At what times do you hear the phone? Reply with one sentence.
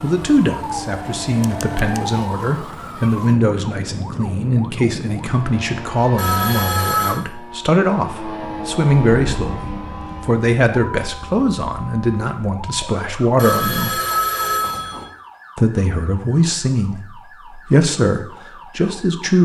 You can hear the phone from 6.2 to 7.2 s and from 13.3 to 15.1 s.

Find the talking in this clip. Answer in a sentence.
The talking can be heard from 0.0 to 14.0 s and from 15.6 to 19.4 s.